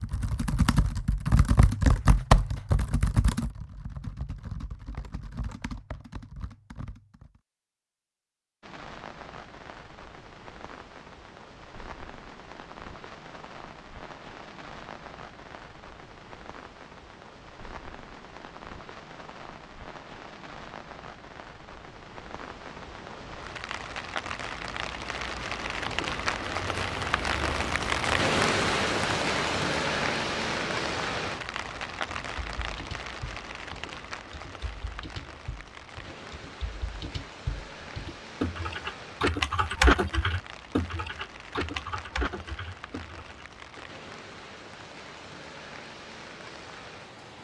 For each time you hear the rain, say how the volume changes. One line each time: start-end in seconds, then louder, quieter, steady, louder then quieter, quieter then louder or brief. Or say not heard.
8.6-47.3 louder then quieter.